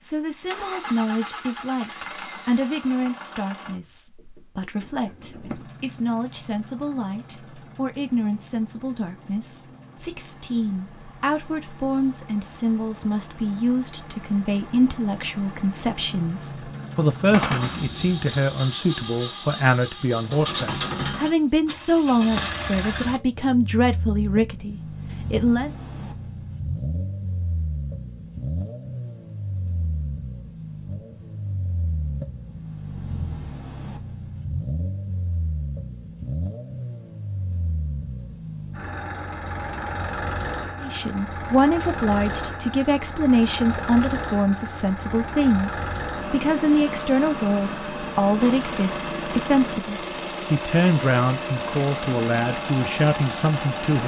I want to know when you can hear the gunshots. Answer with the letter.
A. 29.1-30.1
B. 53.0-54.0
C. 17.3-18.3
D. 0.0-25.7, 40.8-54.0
C.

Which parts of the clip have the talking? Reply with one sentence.
You can hear the talking from 0.0 to 25.7 s and from 40.8 to 54.0 s.